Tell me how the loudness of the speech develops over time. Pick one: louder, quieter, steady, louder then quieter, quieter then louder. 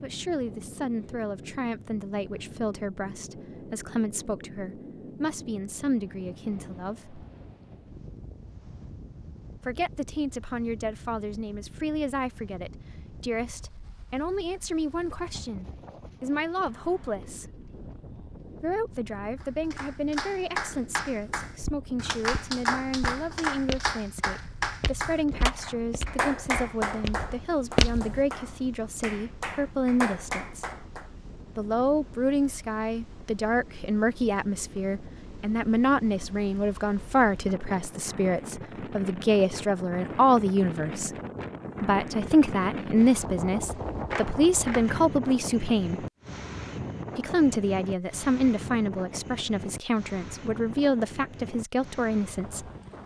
louder.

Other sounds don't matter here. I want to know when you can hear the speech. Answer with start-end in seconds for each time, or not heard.
0.0-7.2, 9.7-17.4, 18.6-30.6, 31.6-41.1, 41.8-46.0, 47.1-52.7.